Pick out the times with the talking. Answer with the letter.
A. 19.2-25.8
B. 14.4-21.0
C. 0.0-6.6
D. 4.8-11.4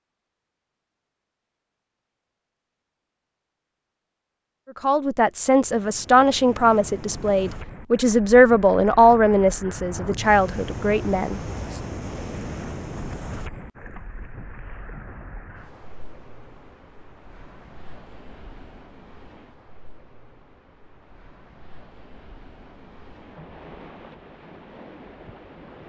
D.